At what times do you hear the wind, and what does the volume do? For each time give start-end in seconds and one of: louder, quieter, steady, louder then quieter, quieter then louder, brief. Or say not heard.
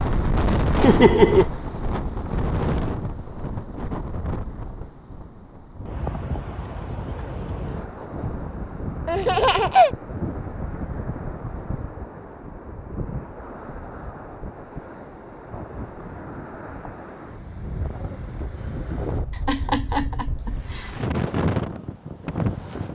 0.0-22.8 quieter then louder.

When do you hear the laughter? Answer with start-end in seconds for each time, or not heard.
0.8-1.4, 9.1-9.9, 19.3-20.9.